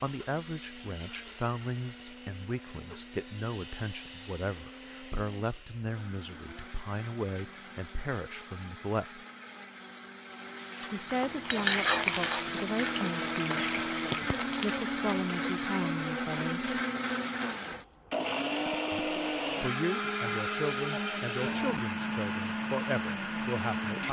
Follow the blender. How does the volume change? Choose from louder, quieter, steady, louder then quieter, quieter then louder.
louder.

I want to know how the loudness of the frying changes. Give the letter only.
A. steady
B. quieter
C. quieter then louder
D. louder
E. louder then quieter
B.